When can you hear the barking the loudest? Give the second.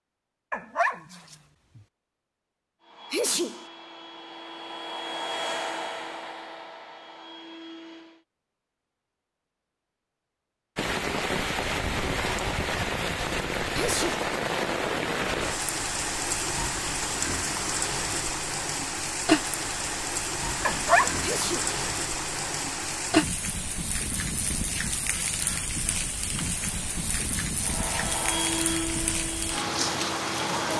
21 s.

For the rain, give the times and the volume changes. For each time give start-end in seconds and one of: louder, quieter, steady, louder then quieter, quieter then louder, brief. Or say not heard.
10.8-30.7 steady.